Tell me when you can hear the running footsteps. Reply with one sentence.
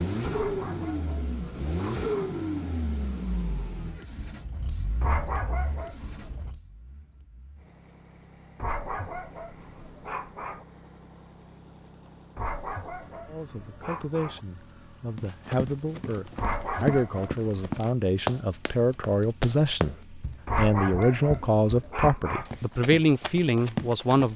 You can hear the running footsteps from 15.2 to 24.3 s.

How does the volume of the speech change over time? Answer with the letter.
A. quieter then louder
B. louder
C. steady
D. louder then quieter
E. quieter
B.